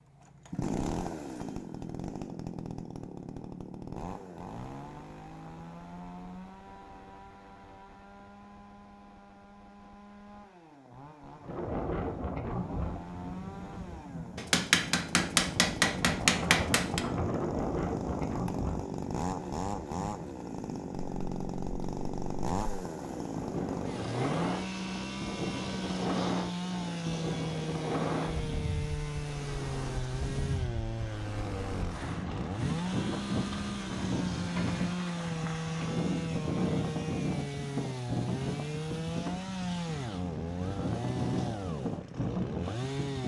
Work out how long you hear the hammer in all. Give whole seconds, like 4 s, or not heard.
3 s.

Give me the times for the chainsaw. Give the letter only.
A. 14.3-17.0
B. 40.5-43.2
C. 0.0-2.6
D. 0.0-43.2
D.